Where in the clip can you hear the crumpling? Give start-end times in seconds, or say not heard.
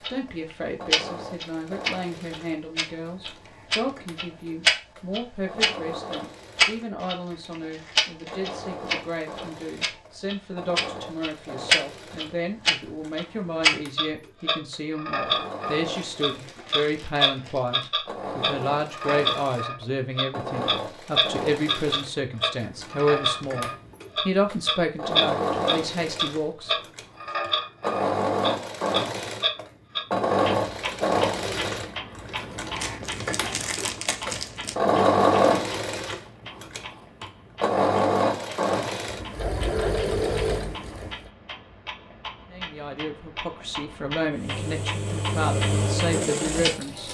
7.0-8.8, 15.9-17.9, 32.8-34.8.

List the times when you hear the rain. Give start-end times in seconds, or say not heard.
not heard.